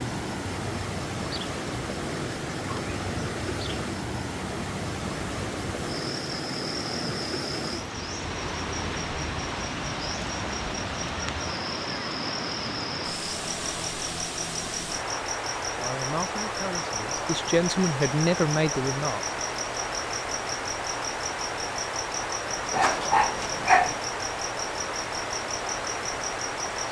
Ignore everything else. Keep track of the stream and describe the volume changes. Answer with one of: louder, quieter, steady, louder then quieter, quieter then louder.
steady.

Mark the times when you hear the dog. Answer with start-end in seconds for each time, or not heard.
22.7-23.9.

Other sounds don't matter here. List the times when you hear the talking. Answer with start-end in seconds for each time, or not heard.
15.8-19.2.